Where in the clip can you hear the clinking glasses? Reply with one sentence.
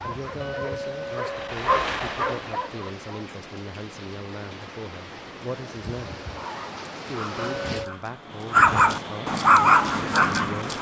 The clinking glasses can be heard from 0.4 to 1.4 s and from 7.3 to 8.0 s.